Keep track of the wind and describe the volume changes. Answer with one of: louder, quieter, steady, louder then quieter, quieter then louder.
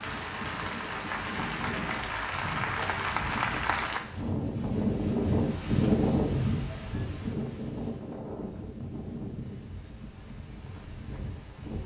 louder then quieter.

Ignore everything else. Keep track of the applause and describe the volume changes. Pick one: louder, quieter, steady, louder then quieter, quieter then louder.
louder.